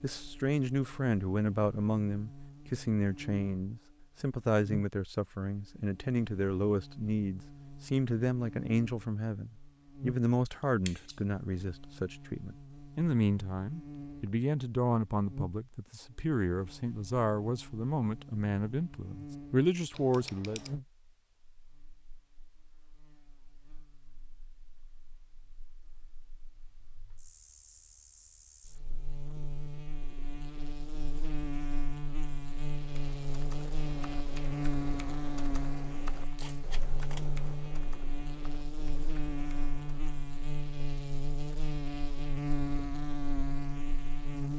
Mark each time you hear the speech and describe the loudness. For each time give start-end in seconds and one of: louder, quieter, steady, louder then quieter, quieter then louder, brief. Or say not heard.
0.0-20.6 steady.